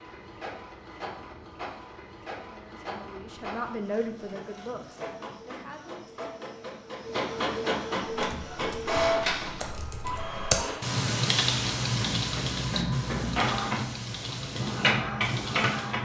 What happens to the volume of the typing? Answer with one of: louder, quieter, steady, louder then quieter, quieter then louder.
louder then quieter.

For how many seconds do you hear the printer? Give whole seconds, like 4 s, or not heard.
16 s.